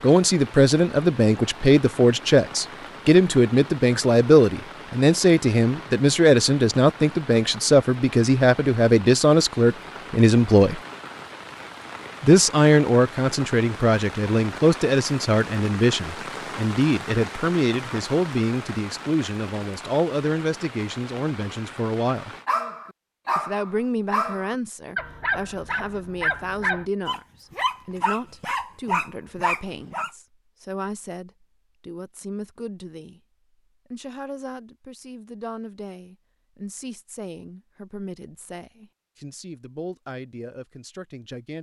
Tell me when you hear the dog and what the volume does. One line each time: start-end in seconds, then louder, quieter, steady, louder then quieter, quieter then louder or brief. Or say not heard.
22.4-30.1 steady.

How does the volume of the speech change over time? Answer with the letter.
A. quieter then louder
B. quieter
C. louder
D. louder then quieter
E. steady
B.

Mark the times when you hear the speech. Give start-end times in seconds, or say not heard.
0.0-10.8, 12.2-22.3, 23.4-33.2, 33.9-41.5.